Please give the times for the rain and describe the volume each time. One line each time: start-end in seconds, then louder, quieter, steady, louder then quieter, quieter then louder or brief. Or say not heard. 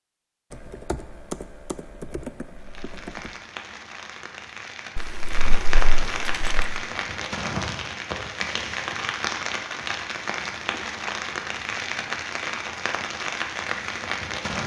2.6-14.6 louder.